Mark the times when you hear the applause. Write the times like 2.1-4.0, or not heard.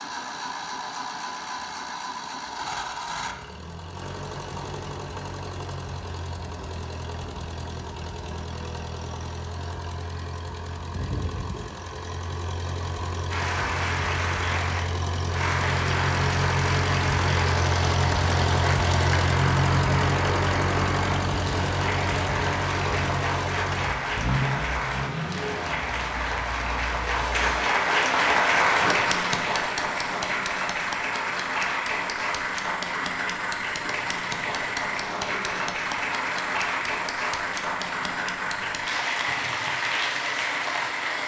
13.3-41.2.